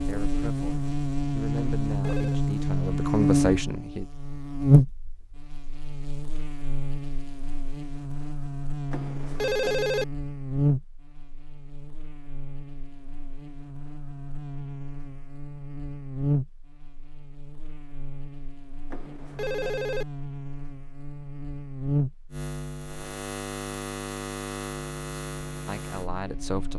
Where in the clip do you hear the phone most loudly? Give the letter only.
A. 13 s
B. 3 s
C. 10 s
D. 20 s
C.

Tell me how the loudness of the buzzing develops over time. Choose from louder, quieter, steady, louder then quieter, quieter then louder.
quieter then louder.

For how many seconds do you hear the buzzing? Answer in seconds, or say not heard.
27 s.